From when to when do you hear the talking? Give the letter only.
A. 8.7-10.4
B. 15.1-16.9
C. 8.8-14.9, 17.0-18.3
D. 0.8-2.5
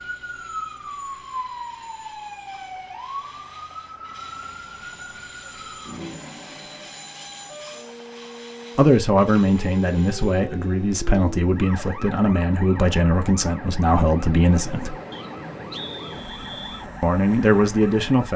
C.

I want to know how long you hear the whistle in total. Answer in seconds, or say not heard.
2 s.